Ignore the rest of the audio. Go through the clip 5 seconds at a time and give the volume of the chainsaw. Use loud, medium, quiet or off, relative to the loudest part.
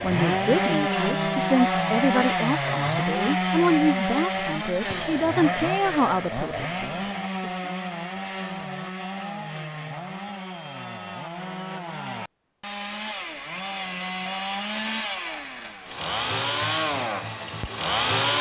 loud, medium, medium, loud.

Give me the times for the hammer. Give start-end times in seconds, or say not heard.
not heard.